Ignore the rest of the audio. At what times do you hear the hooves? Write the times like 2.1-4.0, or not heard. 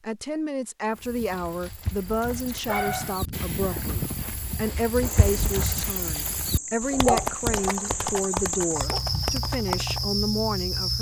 0.9-10.1.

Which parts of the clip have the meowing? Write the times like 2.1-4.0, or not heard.
not heard.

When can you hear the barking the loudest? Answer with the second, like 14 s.
7 s.